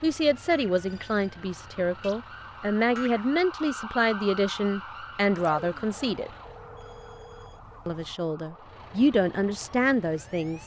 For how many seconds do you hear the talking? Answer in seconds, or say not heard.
9 s.